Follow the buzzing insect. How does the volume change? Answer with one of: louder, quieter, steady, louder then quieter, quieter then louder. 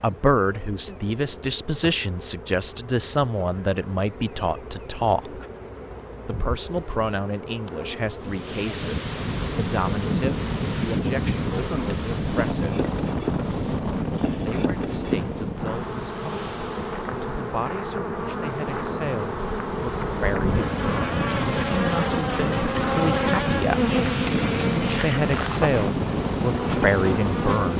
louder.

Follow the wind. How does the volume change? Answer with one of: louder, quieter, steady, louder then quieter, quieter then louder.
quieter then louder.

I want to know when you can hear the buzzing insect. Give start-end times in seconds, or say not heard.
0.0-27.7.